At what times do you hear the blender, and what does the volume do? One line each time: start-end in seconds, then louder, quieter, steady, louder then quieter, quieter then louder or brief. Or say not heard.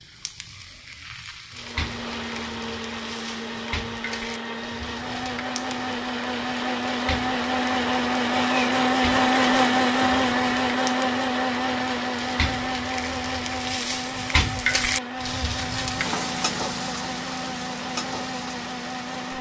1.5-19.3 louder then quieter.